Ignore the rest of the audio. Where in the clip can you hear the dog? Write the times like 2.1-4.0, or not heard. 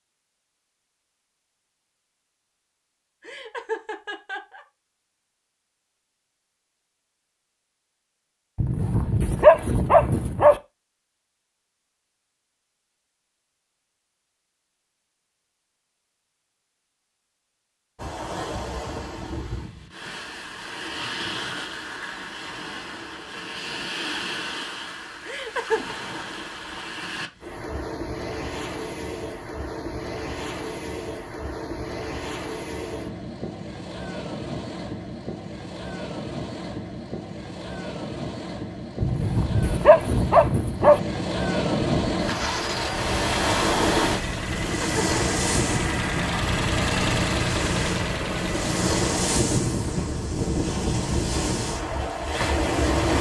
8.6-10.6, 39.0-41.0.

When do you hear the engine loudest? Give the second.
47 s.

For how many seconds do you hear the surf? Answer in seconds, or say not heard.
35 s.